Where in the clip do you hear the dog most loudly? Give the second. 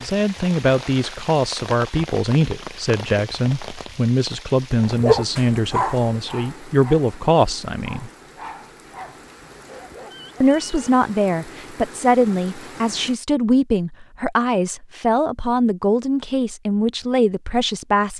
5 s.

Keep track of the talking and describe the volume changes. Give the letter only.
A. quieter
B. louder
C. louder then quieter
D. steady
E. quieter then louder
D.